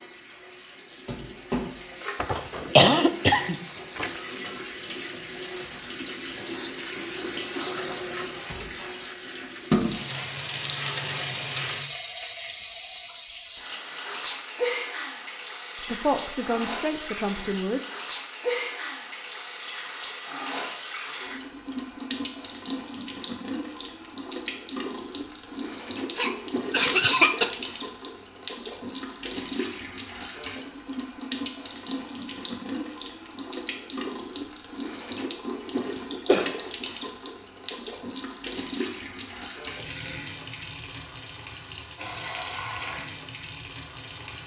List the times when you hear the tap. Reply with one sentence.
You can hear the tap from 0.0 to 44.4 s.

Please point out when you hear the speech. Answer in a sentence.
The speech can be heard from 15.8 to 17.8 s.